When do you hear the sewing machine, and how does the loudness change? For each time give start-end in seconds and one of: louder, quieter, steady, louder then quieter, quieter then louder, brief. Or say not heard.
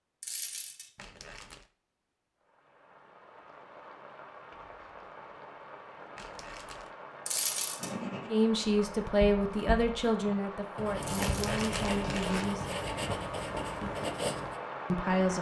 not heard.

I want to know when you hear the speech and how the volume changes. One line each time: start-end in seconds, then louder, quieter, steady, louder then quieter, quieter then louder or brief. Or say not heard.
8.3-12.7 quieter
14.9-15.3 brief.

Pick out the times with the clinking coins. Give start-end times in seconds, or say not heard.
0.2-0.9, 7.2-8.0, 11.0-11.4.